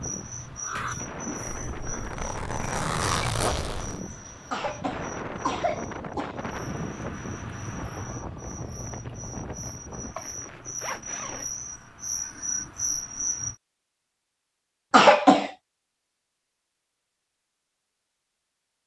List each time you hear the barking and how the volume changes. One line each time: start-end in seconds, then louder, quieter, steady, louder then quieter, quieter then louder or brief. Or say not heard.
not heard.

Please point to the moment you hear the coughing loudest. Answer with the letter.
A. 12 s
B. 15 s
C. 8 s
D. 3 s
B.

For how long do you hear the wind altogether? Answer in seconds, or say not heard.
10 s.